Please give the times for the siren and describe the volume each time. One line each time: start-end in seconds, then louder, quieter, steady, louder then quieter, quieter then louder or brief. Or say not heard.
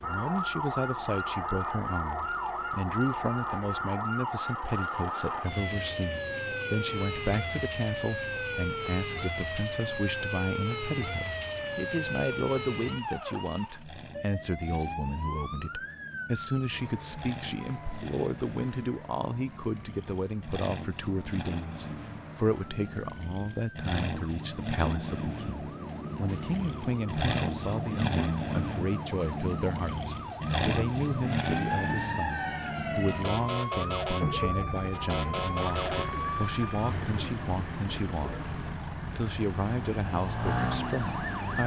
0.0-41.6 quieter then louder.